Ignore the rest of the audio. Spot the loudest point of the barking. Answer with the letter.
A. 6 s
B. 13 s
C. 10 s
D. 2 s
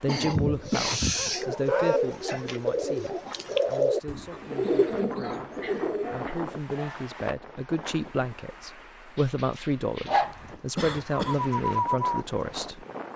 C.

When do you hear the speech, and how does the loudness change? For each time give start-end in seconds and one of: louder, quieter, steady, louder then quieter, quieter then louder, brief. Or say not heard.
0.0-12.8 quieter then louder.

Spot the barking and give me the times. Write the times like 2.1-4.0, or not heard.
1.0-2.0, 5.2-7.2, 9.2-10.5.